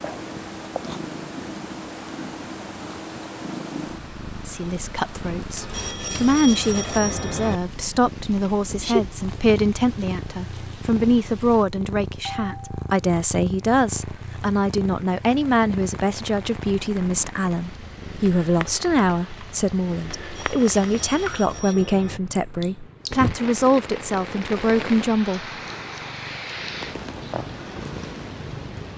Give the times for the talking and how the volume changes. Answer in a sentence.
You can hear the talking from 4.5 to 25.5 s, at a steady volume.